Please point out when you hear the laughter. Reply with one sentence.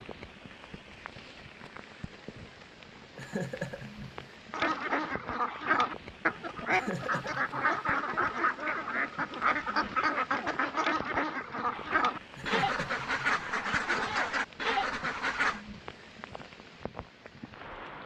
The laughter can be heard from 3.1 to 4.3 s, from 6.7 to 7.8 s and from 12.3 to 13.4 s.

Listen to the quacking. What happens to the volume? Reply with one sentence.
The volume of the quacking stays about the same.